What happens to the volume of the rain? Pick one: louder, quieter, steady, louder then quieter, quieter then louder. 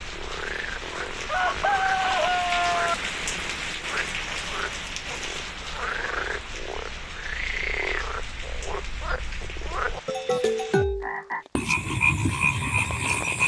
quieter.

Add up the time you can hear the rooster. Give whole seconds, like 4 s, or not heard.
2 s.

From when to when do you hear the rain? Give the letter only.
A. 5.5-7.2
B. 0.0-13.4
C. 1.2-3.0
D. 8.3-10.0
B.